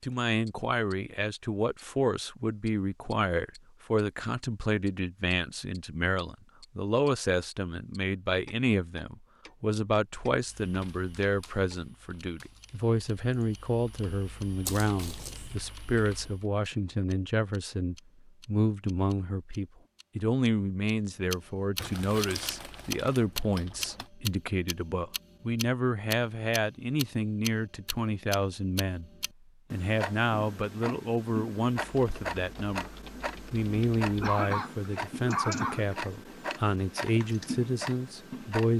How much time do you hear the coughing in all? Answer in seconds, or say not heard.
2 s.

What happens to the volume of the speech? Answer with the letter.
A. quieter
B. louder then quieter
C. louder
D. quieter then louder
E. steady
E.